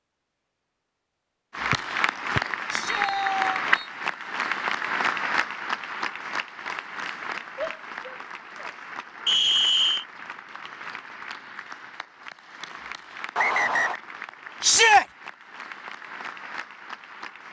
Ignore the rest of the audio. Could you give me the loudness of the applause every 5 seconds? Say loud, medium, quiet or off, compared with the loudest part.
loud, medium, quiet, quiet.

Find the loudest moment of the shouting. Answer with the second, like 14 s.
15 s.